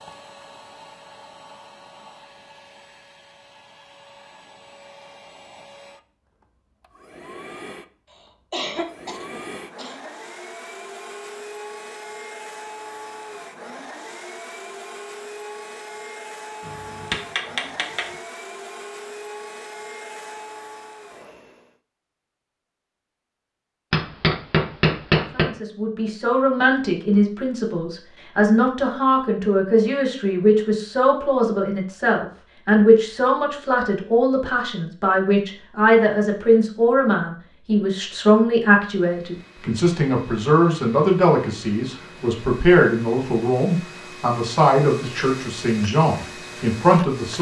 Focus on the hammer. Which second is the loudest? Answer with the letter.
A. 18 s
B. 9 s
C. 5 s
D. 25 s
D.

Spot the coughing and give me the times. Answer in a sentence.
The coughing can be heard from 8.1 to 10.1 s.